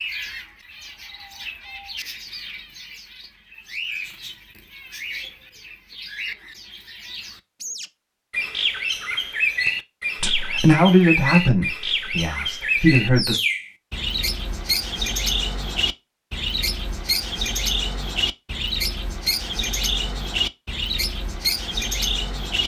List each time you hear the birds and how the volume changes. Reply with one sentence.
You can hear the birds from 0.0 to 22.6 s, getting louder.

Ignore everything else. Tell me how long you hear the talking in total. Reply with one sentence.
The talking can be heard for 3 seconds in total.